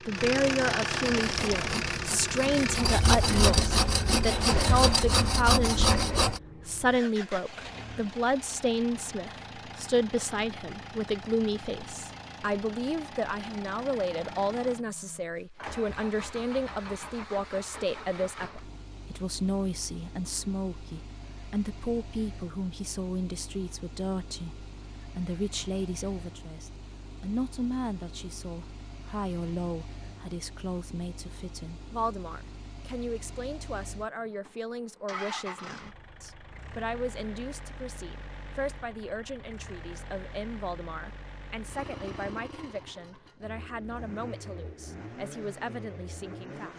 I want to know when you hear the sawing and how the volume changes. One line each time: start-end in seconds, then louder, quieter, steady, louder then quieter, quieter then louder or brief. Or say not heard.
1.2-6.4 louder.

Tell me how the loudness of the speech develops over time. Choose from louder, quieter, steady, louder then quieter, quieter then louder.
quieter.